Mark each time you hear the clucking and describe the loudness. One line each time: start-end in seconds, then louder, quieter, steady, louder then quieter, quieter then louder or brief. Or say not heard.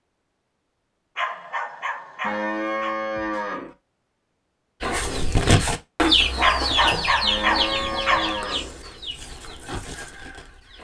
4.8-10.7 quieter.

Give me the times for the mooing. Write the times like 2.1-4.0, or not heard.
2.2-3.8, 7.2-8.8.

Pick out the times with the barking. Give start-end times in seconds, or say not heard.
1.1-3.0, 6.4-8.3.